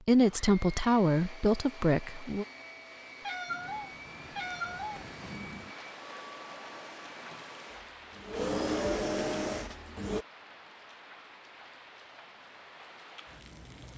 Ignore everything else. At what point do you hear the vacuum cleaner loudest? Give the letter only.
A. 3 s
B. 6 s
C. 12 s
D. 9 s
D.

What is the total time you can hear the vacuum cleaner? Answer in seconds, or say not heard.
10 s.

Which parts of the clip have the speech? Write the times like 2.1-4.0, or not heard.
0.1-2.5.